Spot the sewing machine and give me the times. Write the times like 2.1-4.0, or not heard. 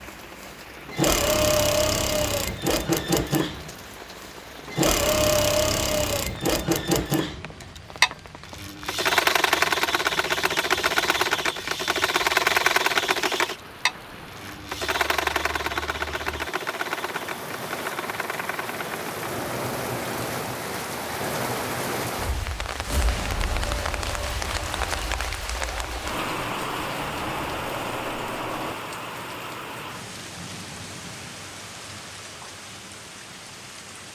0.0-28.8.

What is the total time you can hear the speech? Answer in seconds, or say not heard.
not heard.